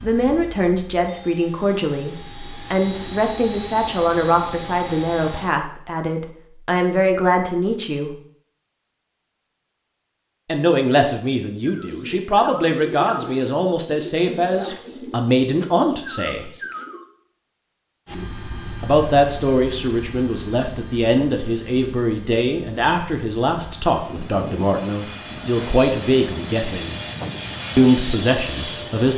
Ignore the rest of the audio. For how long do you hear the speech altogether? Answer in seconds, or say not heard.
24 s.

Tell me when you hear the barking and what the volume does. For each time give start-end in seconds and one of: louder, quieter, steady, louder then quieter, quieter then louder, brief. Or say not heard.
not heard.